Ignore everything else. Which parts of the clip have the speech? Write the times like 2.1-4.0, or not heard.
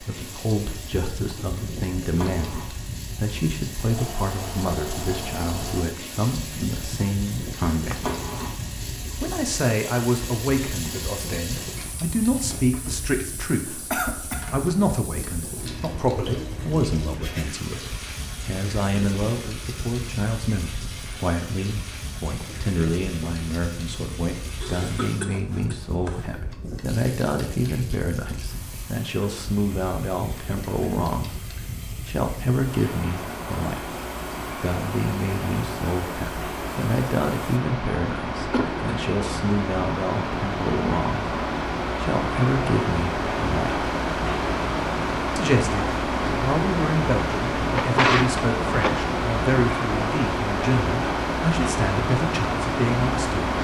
0.0-8.1, 9.2-34.0, 34.6-43.8, 45.4-53.5.